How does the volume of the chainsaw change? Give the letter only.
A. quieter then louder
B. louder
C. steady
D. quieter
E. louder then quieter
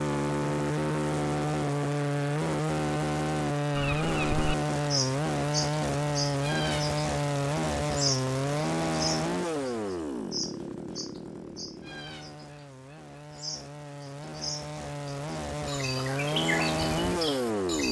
A.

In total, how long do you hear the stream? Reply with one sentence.
You can't hear the stream here.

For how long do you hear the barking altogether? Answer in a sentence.
The barking can't be heard in this clip.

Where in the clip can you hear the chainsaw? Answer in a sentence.
The chainsaw can be heard from 0.0 to 17.8 s.